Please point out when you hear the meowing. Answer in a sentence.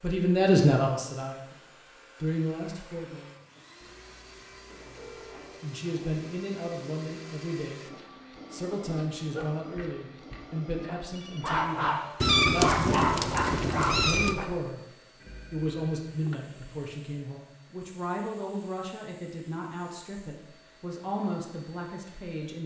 The meowing can be heard from 12.2 to 14.3 s.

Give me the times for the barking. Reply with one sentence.
The barking can be heard from 9.2 to 14.4 s.